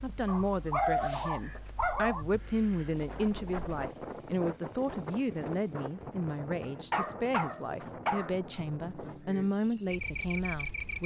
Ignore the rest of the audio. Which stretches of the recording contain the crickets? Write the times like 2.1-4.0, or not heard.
0.0-11.0.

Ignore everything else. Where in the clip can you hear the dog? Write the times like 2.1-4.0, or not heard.
0.2-2.2, 6.7-8.3.